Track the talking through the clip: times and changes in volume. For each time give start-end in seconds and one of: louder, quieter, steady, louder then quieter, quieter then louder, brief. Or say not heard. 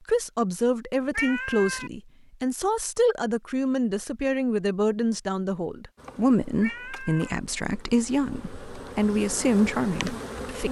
0.1-10.6 steady.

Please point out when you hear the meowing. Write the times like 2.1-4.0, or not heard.
1.1-1.9, 6.6-7.3.